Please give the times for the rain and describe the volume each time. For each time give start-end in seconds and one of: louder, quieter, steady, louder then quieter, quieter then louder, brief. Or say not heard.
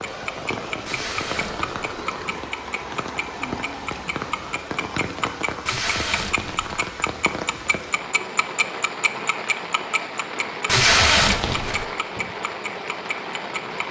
0.0-13.8 steady.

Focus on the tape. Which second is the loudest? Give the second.
11 s.